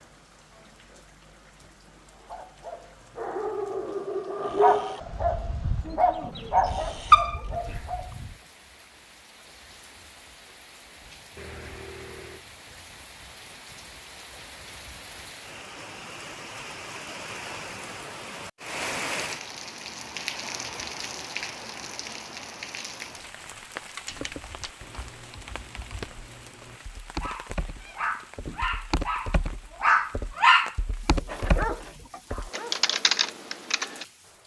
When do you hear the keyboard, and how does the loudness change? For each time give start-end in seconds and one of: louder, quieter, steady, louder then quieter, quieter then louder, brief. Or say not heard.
24.1-34.0 louder.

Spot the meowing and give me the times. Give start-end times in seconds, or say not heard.
11.3-12.4, 27.8-28.6.